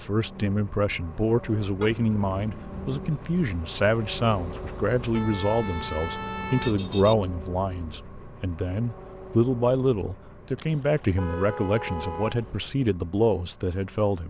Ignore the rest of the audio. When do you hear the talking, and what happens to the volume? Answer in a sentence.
The talking can be heard from 0.0 to 14.2 s, at a steady volume.